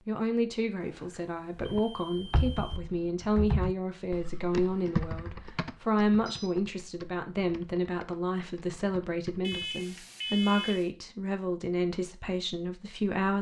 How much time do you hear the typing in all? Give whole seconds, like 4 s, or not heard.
8 s.